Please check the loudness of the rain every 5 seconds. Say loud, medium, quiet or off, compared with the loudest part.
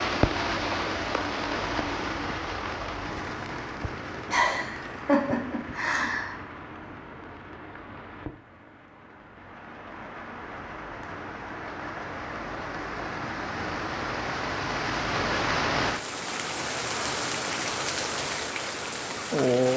loud, quiet, medium, loud.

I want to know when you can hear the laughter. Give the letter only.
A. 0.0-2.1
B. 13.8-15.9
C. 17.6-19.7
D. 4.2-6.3
D.